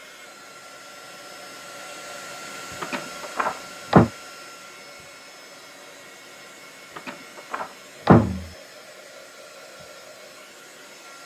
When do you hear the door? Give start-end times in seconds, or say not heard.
2.8-4.1, 7.0-8.4.